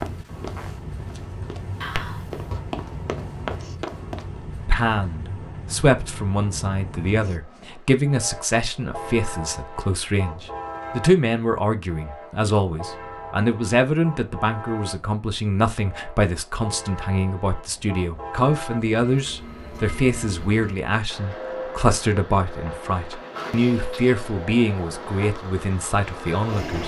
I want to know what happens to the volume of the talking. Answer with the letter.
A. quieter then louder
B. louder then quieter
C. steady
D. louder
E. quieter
C.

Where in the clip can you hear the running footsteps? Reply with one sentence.
The running footsteps can be heard from 0.0 to 4.4 s.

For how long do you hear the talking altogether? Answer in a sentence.
You can hear the talking for 22 seconds altogether.